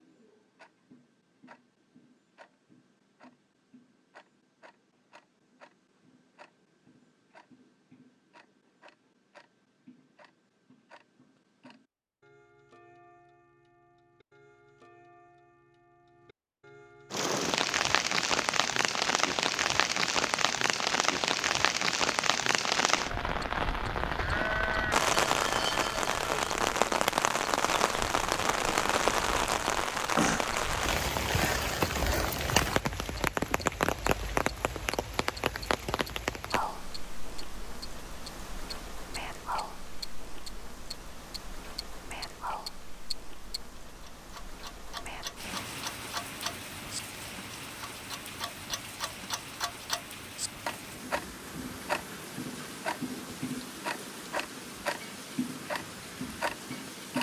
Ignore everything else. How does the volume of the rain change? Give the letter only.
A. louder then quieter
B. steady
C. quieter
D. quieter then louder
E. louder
C.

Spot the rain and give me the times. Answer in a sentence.
The rain can be heard from 17.1 to 57.1 s.